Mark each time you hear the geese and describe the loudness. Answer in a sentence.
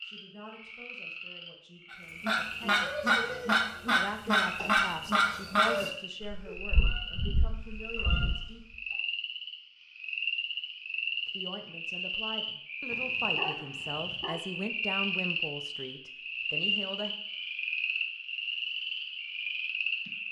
The geese can be heard from 1.9 to 8.5 s, getting quieter.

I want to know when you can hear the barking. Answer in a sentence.
You can hear the barking from 12.9 to 14.4 s.